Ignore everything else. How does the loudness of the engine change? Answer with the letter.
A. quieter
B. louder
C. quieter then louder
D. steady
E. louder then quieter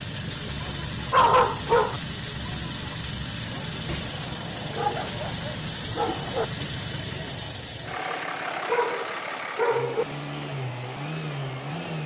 D.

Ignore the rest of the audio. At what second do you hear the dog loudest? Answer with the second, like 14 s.
1 s.